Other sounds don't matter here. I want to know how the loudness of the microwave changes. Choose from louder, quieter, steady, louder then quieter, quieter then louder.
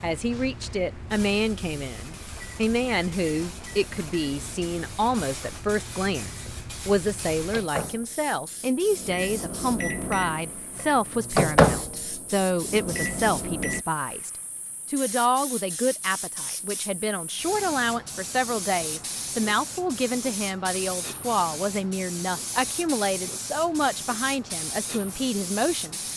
louder.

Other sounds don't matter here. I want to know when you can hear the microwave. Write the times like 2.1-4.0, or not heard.
0.0-13.8.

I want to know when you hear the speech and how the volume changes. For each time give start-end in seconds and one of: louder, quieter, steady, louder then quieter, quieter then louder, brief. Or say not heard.
0.0-26.1 steady.